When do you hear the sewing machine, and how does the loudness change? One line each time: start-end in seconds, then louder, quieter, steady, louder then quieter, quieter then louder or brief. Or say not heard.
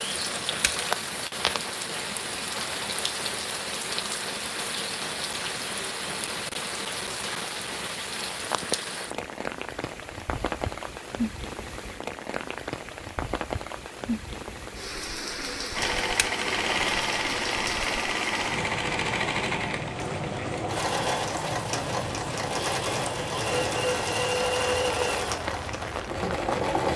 15.7-26.9 steady.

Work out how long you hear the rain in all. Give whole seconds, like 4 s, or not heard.
27 s.